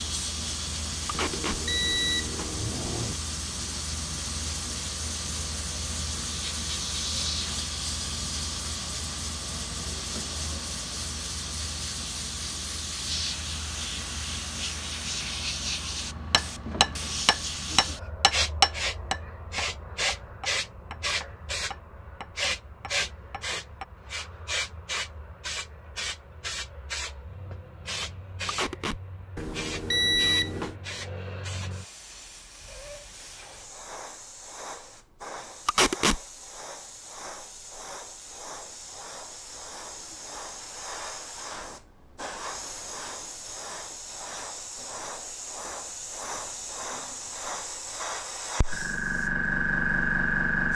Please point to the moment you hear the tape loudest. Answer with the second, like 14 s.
36 s.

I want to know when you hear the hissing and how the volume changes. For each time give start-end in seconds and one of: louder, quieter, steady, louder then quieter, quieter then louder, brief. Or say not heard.
0.0-50.7 quieter then louder.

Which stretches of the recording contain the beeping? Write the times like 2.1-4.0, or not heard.
1.1-3.1, 29.4-30.8.